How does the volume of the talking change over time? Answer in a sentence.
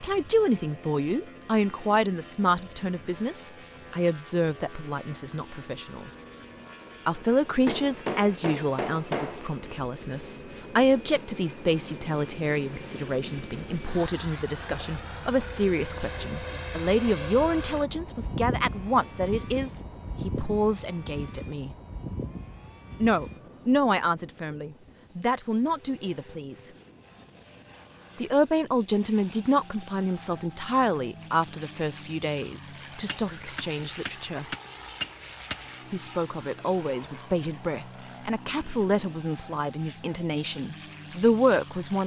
The loudness of the talking stays about the same.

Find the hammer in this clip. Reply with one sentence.
The hammer can be heard from 7.7 to 9.4 s and from 33.0 to 35.6 s.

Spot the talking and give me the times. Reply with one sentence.
You can hear the talking from 0.0 to 6.1 s, from 7.0 to 21.8 s, from 23.0 to 26.7 s, from 28.2 to 34.5 s and from 35.9 to 42.0 s.